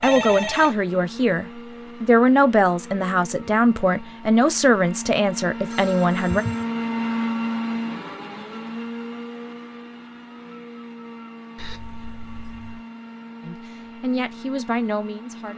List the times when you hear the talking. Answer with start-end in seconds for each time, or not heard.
0.0-6.5, 13.4-15.5.